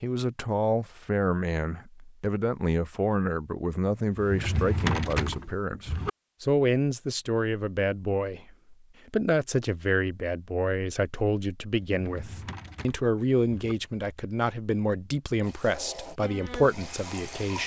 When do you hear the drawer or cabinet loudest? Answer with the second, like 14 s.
5 s.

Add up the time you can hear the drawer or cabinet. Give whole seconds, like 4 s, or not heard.
4 s.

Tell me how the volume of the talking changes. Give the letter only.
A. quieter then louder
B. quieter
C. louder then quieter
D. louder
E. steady
E.